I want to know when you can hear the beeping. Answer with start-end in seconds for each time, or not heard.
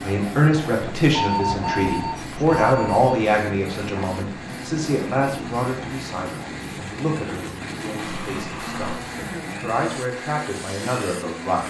1.1-3.1, 8.0-9.1.